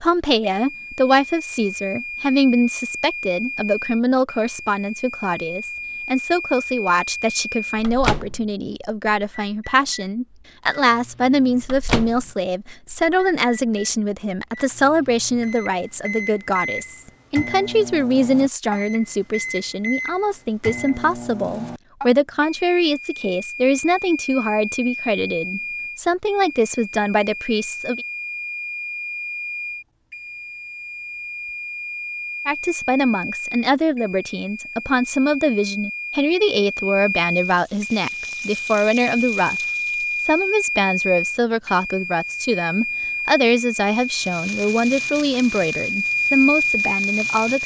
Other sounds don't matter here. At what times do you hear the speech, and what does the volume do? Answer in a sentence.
You can hear the speech from 0.0 to 28.0 s, at a steady volume; from 32.5 to 39.6 s, at a steady volume; and from 40.2 to 47.6 s, at a steady volume.